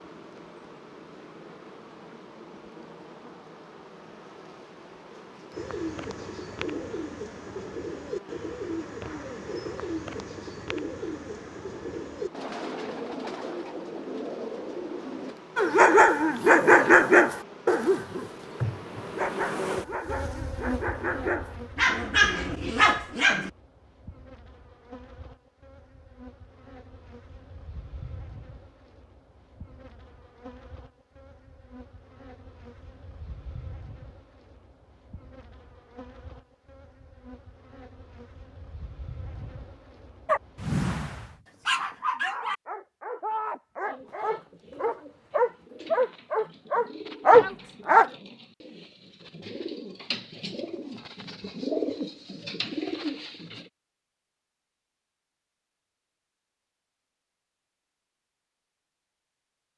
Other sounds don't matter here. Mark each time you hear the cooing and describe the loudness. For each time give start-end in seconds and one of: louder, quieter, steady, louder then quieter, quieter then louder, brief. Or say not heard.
5.5-15.4 steady
43.9-53.7 louder.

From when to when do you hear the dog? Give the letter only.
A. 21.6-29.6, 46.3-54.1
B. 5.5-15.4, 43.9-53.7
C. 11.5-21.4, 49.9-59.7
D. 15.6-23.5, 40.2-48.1
D.